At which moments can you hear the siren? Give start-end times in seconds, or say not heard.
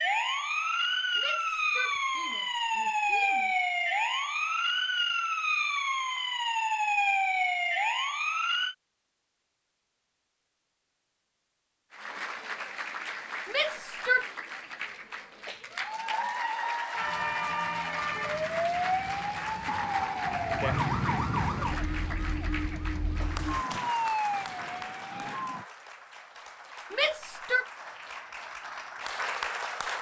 0.0-8.8, 16.9-25.6.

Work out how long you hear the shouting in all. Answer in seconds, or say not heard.
4 s.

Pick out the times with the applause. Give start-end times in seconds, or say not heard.
11.9-29.9.